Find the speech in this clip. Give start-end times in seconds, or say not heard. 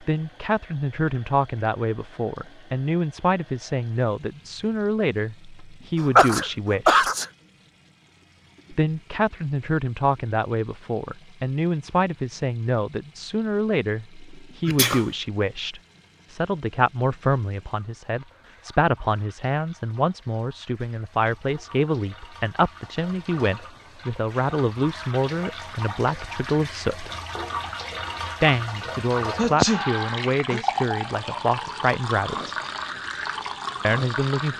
0.0-7.1, 8.7-27.1, 28.4-32.5, 33.8-34.5.